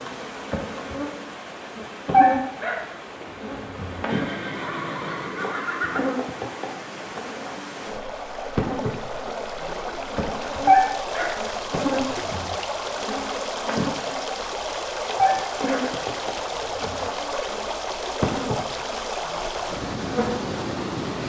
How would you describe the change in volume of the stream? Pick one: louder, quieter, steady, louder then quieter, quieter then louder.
louder.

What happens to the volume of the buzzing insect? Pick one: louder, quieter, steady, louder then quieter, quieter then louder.
steady.